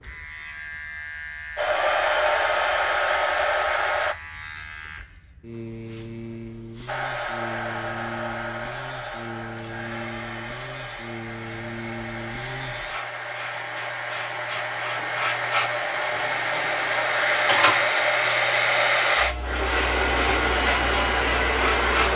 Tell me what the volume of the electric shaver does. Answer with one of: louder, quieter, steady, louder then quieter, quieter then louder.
louder.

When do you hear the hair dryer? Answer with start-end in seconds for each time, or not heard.
1.6-4.2, 6.8-22.1.